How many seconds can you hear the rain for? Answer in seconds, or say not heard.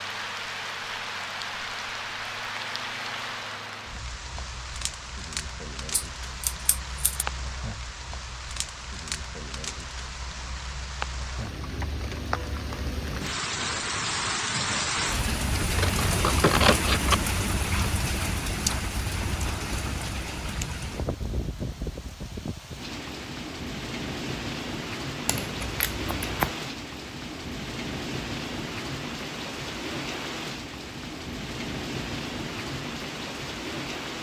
34 s.